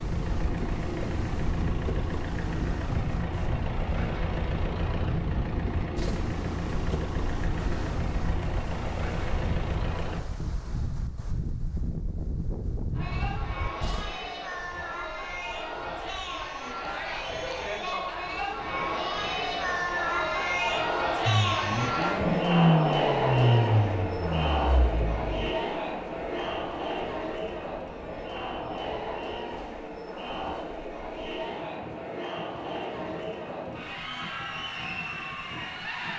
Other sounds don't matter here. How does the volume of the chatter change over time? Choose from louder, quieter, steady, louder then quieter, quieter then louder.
louder then quieter.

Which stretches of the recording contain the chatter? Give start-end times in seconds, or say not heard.
12.9-36.1.